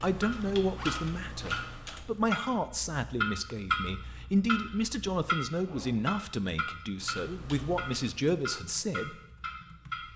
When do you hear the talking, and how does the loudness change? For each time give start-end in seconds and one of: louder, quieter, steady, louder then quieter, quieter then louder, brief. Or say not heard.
0.0-9.2 steady.